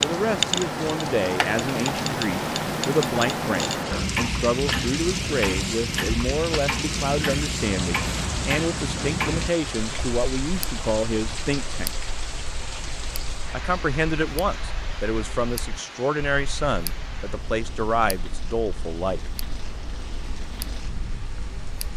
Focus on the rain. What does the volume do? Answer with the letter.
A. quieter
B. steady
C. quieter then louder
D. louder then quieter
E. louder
A.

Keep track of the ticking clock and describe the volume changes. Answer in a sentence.
The loudness of the ticking clock goes down.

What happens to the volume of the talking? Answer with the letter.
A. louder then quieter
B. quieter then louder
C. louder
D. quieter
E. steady
E.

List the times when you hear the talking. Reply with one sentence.
You can hear the talking from 0.0 to 11.9 s and from 13.5 to 19.3 s.